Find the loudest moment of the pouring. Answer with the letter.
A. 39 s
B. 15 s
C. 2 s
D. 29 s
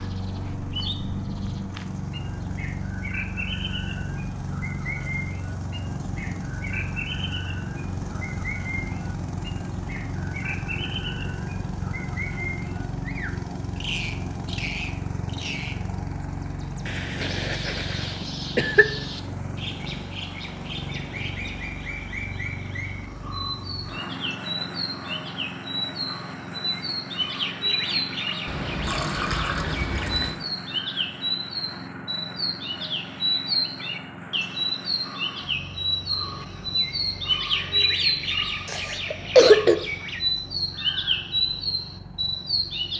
D.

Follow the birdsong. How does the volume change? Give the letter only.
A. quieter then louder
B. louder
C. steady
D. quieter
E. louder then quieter
B.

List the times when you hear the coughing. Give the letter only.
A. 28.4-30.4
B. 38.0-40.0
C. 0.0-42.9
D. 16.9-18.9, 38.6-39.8
D.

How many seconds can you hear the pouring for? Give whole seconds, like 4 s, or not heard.
2 s.